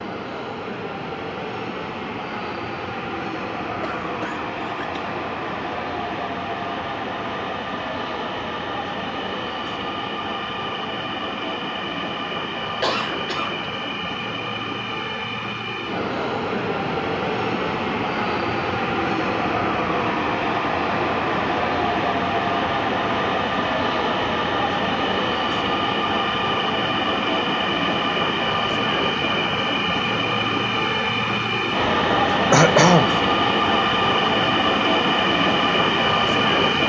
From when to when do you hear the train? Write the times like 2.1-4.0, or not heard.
0.0-36.8.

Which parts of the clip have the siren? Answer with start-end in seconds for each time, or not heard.
not heard.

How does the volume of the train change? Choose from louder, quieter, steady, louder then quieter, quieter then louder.
louder.